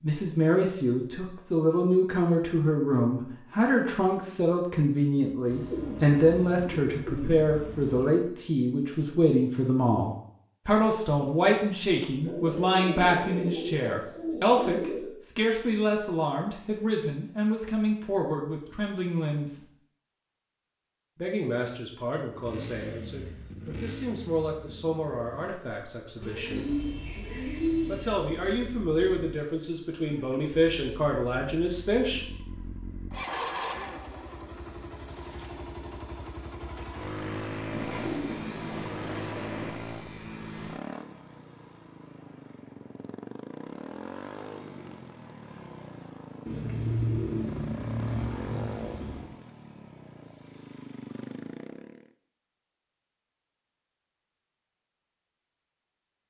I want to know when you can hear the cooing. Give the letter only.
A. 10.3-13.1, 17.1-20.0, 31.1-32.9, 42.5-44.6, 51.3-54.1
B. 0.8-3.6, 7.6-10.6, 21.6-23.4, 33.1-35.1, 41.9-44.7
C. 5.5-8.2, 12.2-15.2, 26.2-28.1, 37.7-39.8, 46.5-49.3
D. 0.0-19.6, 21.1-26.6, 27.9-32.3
C.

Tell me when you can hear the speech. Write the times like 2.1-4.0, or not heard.
0.0-19.6, 21.1-26.6, 27.9-32.3.